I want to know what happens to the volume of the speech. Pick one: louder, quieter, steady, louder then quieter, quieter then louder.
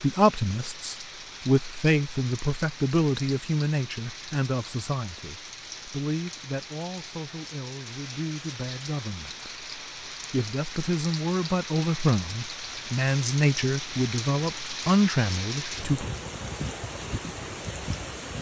quieter then louder.